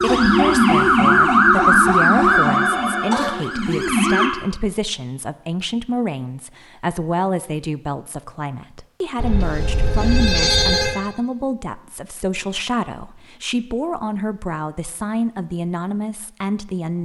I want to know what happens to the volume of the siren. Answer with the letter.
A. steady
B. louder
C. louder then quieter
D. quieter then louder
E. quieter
E.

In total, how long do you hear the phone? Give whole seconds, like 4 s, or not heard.
3 s.